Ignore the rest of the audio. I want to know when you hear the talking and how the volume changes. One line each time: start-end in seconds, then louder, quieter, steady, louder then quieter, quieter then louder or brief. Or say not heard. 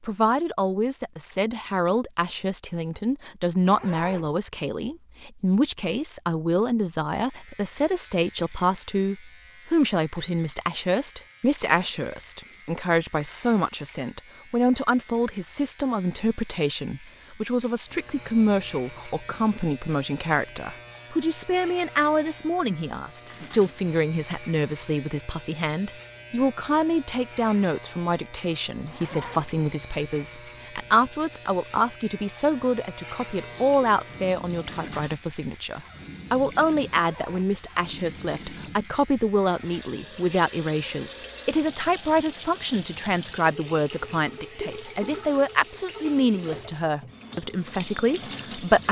0.0-48.8 steady.